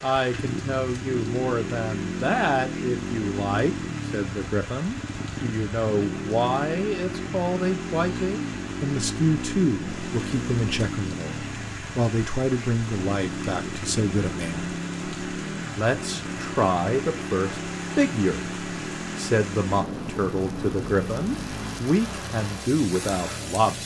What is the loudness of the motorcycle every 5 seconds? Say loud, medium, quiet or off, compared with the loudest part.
loud, loud, loud, loud, medium.